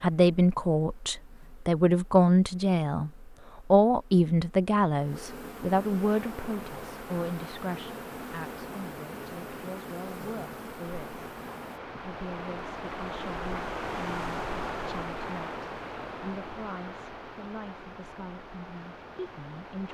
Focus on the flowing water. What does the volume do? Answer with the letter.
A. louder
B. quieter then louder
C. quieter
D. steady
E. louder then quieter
E.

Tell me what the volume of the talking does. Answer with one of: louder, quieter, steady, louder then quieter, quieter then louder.
quieter.